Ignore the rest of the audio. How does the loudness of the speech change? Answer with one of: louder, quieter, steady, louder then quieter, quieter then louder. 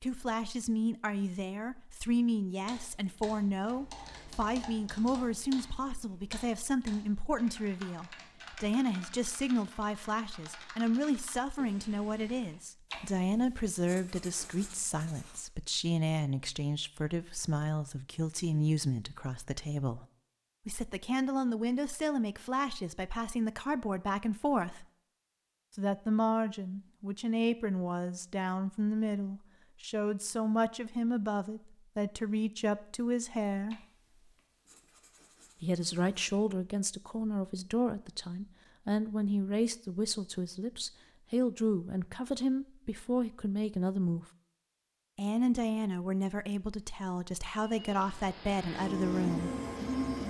steady.